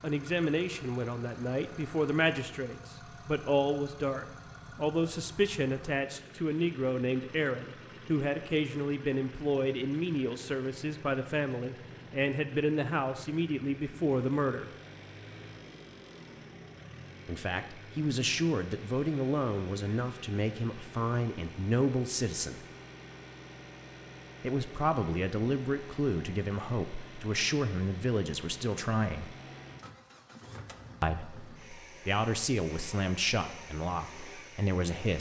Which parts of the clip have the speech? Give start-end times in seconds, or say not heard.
0.0-14.7, 17.2-22.6, 24.4-29.4, 31.0-35.1.